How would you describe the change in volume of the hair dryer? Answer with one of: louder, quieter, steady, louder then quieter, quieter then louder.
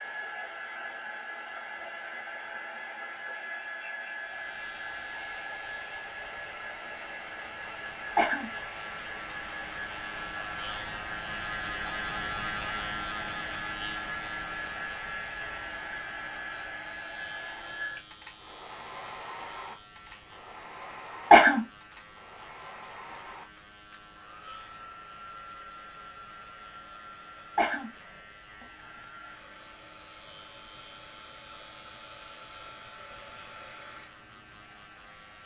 quieter.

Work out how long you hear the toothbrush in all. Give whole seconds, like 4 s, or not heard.
not heard.